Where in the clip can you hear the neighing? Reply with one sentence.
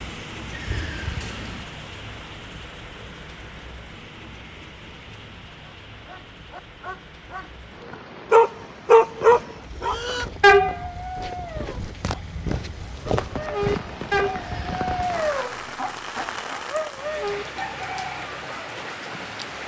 You can hear the neighing from 0.5 to 1.6 s and from 14.3 to 15.4 s.